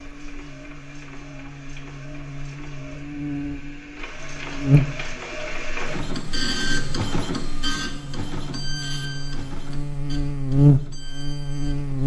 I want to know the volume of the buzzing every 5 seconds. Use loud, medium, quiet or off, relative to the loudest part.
medium, quiet, loud.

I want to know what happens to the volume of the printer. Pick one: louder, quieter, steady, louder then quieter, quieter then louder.
louder then quieter.